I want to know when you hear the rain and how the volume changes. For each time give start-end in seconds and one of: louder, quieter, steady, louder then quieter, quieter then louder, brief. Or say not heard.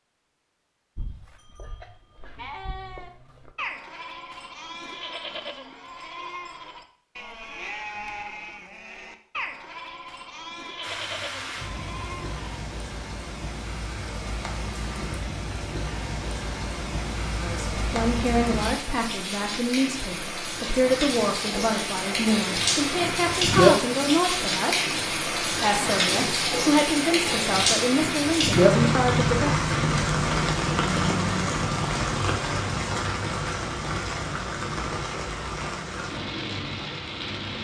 10.8-37.5 louder then quieter.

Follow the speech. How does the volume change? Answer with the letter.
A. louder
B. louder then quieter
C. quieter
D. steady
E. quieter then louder
D.